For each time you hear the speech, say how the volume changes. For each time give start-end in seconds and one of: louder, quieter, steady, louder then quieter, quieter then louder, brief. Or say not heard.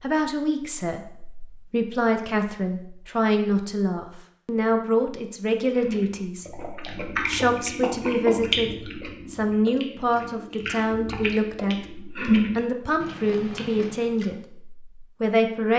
0.0-15.7 steady.